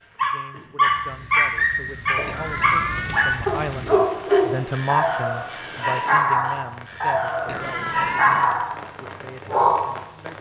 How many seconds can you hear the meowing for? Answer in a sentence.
The meowing can be heard for 2 seconds in total.